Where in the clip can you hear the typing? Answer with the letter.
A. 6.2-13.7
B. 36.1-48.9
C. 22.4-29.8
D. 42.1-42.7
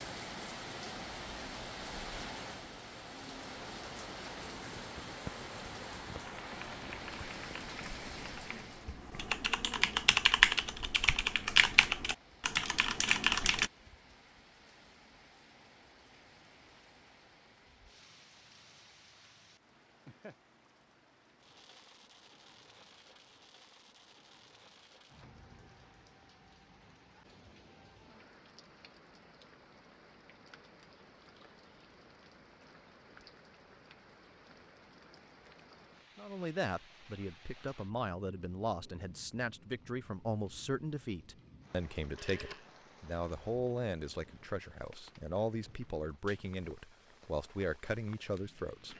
A.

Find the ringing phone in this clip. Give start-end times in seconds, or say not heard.
42.1-42.7.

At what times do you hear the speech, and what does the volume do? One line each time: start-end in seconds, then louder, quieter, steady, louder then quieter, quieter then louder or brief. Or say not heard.
36.1-48.9 steady.